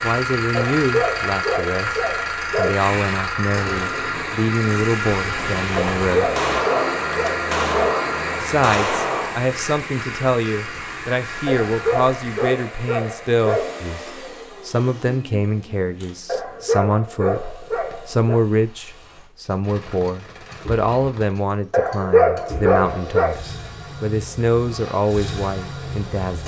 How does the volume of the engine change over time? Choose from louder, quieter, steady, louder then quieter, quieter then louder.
quieter then louder.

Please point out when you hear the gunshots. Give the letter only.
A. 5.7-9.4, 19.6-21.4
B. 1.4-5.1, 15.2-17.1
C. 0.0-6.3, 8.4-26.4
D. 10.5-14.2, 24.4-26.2
A.